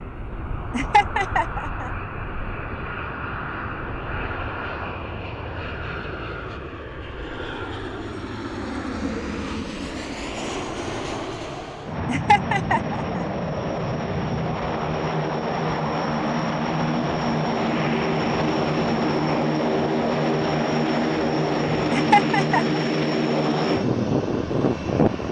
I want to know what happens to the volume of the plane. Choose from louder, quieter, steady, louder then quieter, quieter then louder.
louder.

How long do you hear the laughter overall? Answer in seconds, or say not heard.
3 s.